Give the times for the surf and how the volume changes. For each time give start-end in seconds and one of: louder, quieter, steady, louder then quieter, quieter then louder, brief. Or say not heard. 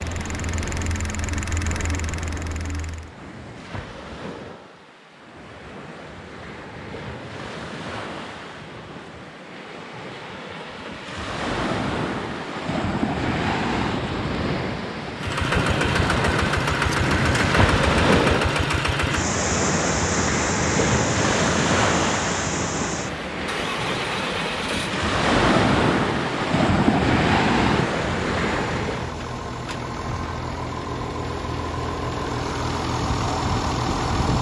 0.0-29.1 louder.